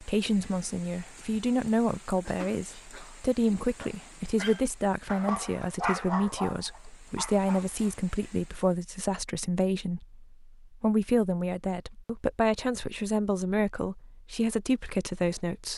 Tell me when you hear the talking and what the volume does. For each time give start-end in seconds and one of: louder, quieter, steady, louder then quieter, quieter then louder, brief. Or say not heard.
0.0-15.7 steady.